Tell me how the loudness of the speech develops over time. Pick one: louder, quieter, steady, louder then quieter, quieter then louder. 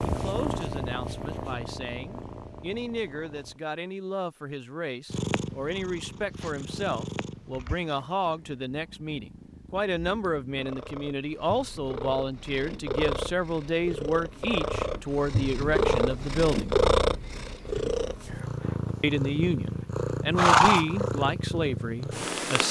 louder.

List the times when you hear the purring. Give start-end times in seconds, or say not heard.
0.0-3.6, 5.1-22.6.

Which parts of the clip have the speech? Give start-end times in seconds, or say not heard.
0.1-16.8, 19.0-22.6.